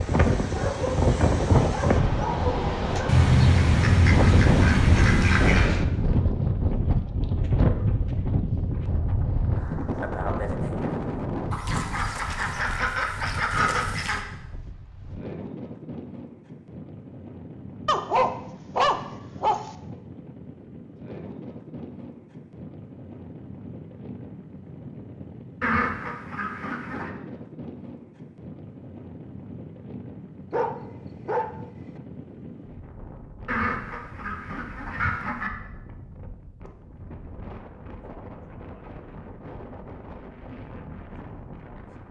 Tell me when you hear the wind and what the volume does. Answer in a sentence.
You can hear the wind from 0.0 to 42.0 s, getting quieter.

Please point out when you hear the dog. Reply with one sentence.
The dog can be heard from 0.6 to 3.1 s, from 17.9 to 19.6 s and from 30.5 to 31.6 s.